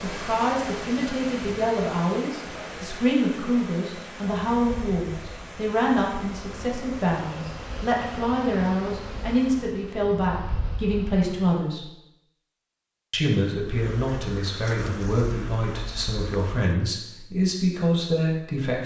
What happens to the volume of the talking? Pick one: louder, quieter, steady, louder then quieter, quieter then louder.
steady.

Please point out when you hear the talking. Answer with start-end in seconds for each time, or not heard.
0.0-11.9, 13.1-18.8.